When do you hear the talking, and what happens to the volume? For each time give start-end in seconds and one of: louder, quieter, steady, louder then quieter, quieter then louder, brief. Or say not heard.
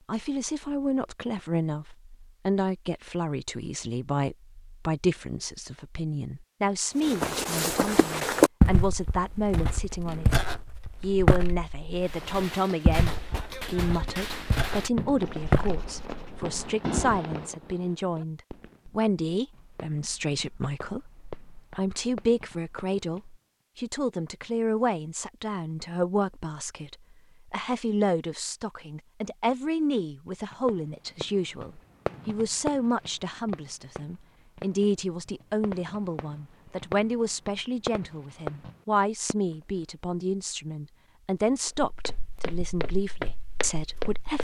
0.1-10.4 steady
11.0-44.3 steady.